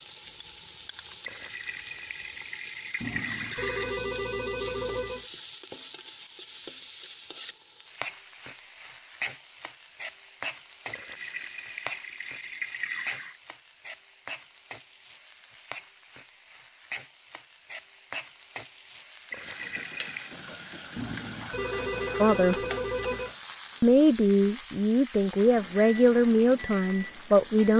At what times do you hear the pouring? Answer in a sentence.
You can hear the pouring from 1.2 to 4.0 s, from 10.9 to 13.4 s and from 19.3 to 20.4 s.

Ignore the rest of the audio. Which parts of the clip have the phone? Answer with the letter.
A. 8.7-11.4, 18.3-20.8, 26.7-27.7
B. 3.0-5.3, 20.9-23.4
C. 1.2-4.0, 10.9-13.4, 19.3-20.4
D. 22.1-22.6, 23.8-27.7
B.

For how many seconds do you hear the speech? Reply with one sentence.
You can hear the speech for 4 seconds altogether.